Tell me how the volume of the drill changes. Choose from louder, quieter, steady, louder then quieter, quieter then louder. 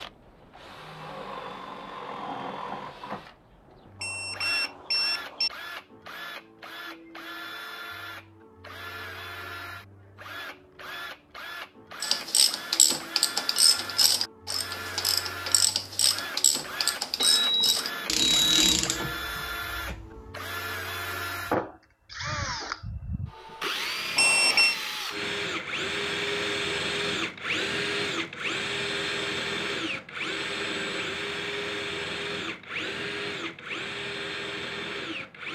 louder.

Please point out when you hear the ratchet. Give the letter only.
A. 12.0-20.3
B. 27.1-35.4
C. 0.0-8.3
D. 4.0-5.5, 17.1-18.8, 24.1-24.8
A.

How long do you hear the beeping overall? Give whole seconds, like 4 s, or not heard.
4 s.